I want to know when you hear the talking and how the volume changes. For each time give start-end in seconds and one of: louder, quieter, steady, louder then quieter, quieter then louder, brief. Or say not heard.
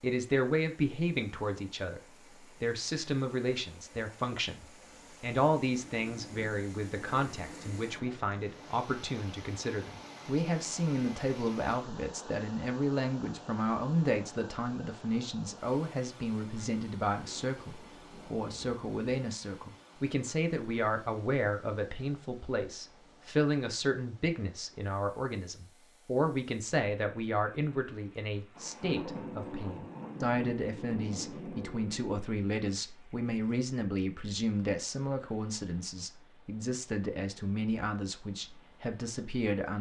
0.0-39.7 steady.